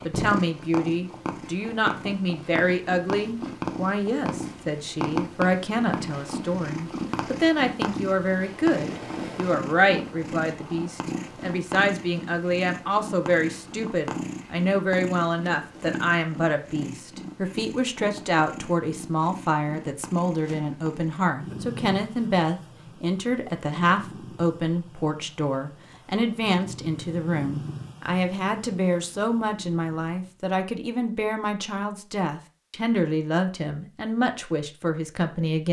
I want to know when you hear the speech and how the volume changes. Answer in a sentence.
You can hear the speech from 0.0 to 35.6 s, at a steady volume.